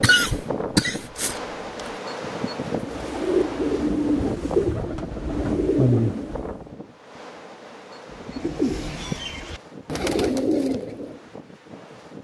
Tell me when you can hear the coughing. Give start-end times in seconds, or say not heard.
0.0-1.9.